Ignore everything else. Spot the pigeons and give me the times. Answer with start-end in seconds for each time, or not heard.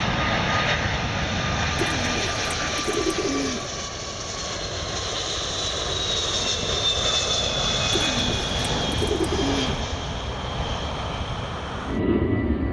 1.8-3.7, 7.9-9.8.